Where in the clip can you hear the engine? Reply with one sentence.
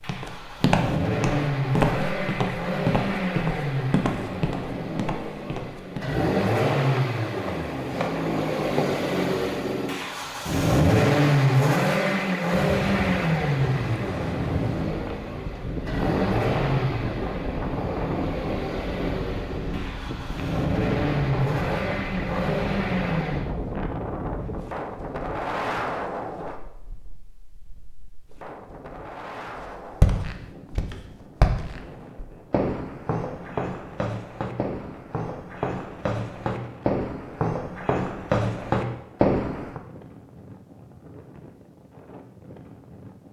You can hear the engine from 0.0 to 23.6 s.